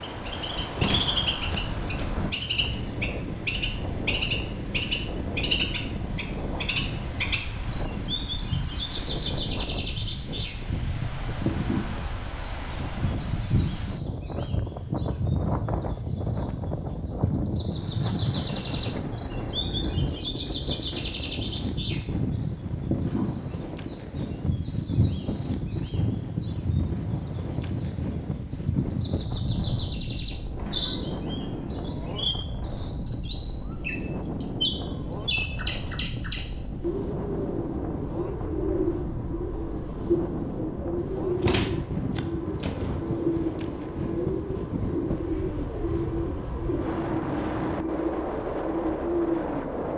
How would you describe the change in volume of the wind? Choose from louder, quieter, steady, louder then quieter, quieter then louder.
steady.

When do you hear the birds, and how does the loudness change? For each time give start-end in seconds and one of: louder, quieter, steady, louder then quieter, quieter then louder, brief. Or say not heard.
0.0-49.9 steady.